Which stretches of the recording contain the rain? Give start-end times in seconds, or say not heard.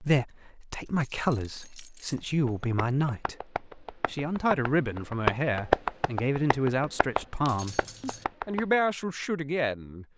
not heard.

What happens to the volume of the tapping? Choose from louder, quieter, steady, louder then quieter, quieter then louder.
louder then quieter.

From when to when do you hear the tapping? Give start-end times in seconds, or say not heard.
2.1-8.9.